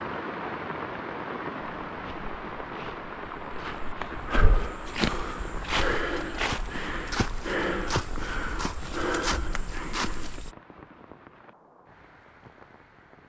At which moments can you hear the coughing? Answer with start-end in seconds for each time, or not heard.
not heard.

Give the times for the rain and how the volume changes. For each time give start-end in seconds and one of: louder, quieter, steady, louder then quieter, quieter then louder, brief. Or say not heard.
0.0-13.2 quieter.